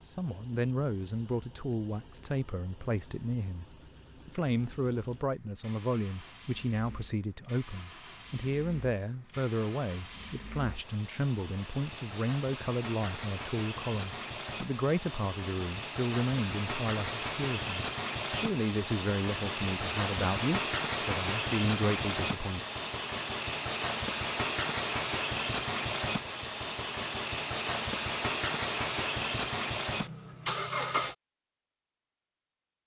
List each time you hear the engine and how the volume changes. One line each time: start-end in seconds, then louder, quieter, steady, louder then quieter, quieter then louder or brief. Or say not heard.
0.0-31.1 louder.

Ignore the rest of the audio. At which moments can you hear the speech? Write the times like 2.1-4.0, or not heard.
0.0-3.6, 4.2-22.6.